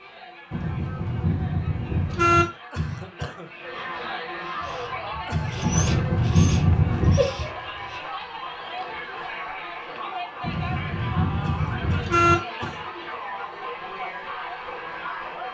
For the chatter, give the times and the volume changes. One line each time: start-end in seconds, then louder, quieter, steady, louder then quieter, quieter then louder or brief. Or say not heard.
0.0-15.4 louder.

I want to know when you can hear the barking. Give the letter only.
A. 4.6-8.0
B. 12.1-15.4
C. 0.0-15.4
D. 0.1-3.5
A.